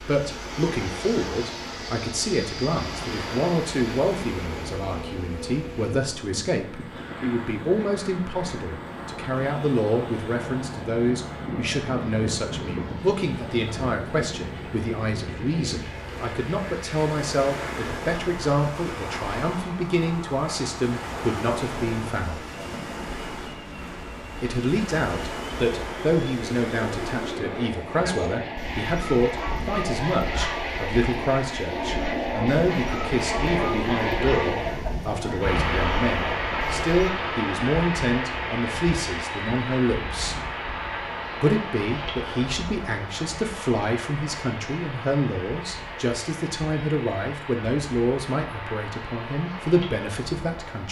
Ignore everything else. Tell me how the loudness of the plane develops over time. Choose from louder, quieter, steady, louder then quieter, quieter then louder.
louder then quieter.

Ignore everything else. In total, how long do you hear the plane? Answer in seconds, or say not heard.
51 s.